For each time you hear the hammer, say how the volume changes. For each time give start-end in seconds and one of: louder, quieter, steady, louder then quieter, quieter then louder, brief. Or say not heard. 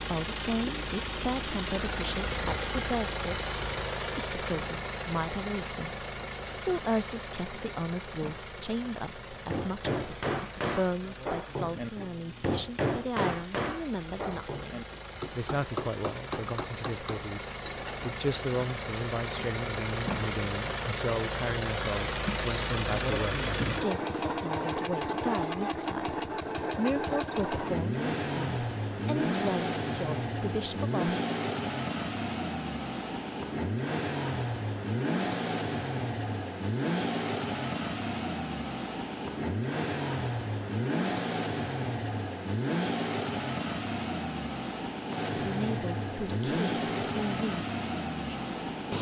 9.2-18.1 quieter.